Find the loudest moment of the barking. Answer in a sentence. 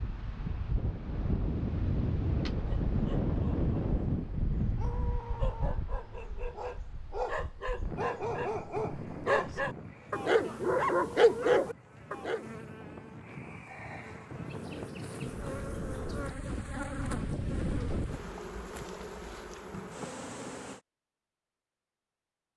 The volume of the barking peaks at 11 seconds.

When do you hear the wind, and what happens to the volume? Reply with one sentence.
You can hear the wind from 0.0 to 18.2 s, getting quieter then louder.